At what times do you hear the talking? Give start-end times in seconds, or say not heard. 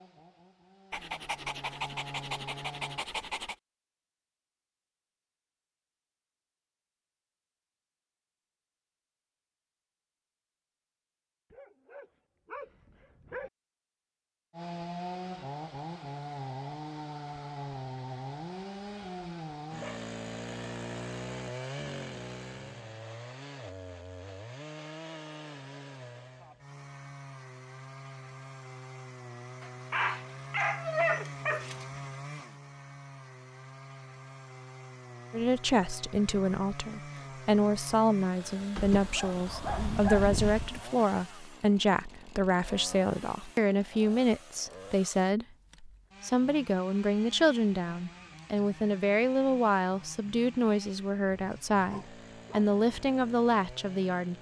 35.3-54.3.